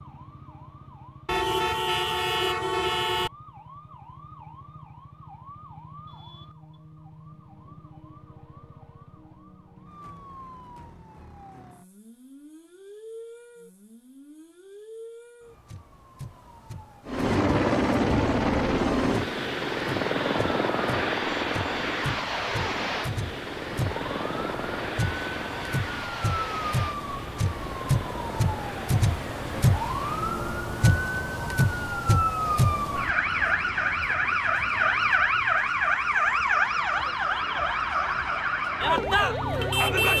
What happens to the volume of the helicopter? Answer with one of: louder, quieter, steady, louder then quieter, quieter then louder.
quieter.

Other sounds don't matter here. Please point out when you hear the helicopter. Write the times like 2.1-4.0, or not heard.
17.1-30.3.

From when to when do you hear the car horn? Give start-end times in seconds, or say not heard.
1.2-3.3.